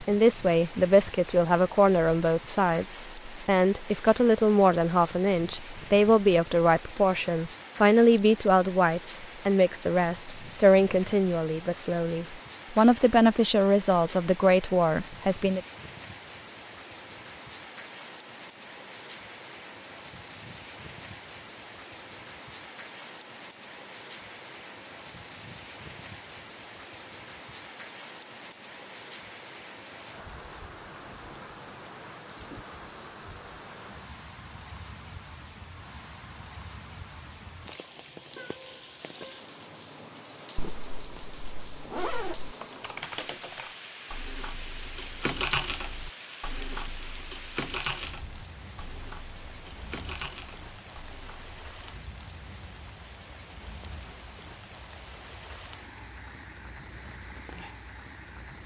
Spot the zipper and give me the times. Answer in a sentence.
The zipper can be heard from 40.5 to 42.5 s.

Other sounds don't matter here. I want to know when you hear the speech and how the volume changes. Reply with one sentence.
The speech can be heard from 0.0 to 15.6 s, at a steady volume.